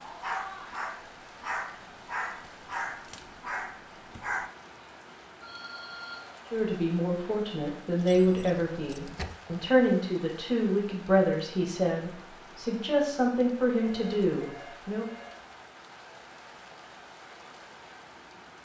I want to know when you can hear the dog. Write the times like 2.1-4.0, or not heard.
0.0-4.5.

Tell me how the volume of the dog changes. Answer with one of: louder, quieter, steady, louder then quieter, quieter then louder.
steady.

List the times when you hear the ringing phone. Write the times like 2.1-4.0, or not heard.
5.4-6.2, 13.8-15.4.